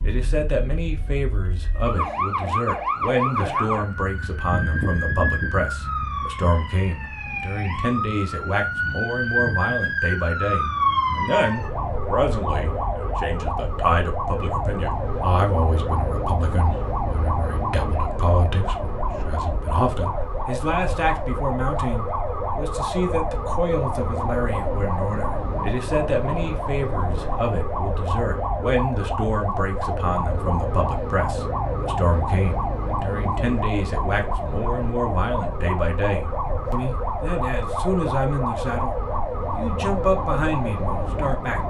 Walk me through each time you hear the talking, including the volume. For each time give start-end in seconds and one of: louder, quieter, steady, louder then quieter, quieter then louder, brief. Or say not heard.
0.0-41.6 steady.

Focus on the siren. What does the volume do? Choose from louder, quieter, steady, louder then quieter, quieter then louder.
steady.